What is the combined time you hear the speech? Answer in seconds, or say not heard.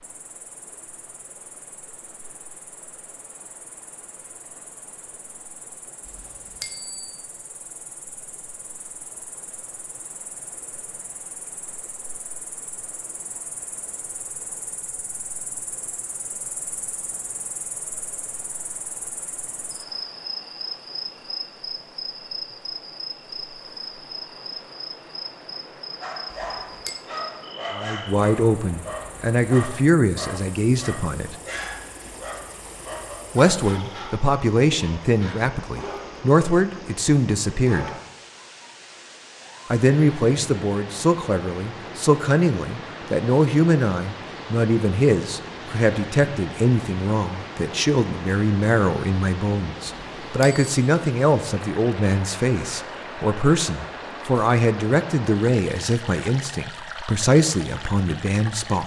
27 s.